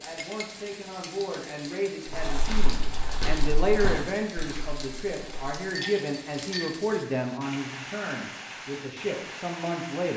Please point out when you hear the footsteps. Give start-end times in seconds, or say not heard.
2.0-5.6.